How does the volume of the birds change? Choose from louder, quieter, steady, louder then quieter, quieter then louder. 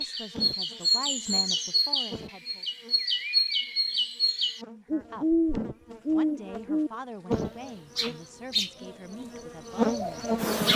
quieter.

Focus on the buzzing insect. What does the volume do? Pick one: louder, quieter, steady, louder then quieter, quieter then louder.
quieter then louder.